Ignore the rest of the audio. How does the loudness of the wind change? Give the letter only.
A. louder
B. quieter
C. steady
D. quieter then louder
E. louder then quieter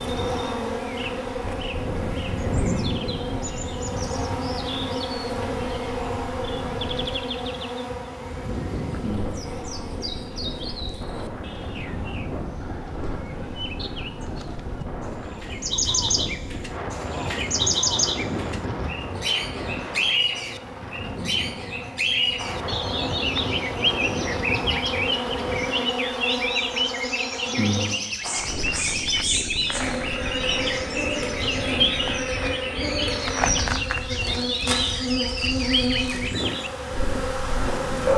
C.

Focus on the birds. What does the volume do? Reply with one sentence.
The volume of the birds goes up.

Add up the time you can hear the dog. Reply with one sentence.
The dog can't be heard in this clip.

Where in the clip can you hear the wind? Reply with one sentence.
You can hear the wind from 0.0 to 38.1 s.